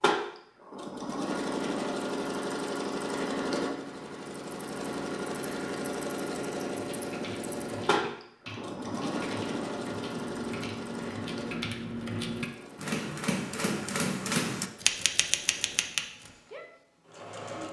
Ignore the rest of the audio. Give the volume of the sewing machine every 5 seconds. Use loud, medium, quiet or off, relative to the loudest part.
loud, loud, medium, quiet.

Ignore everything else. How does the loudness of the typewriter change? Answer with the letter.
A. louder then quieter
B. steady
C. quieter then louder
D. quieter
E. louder
E.